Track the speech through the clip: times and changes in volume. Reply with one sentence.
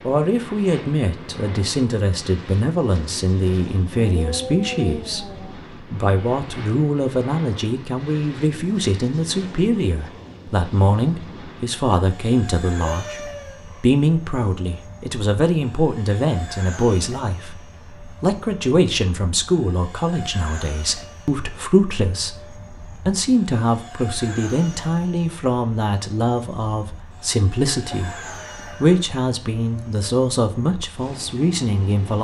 The speech can be heard from 0.0 to 32.2 s, at a steady volume.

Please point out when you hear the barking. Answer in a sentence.
You can't hear the barking here.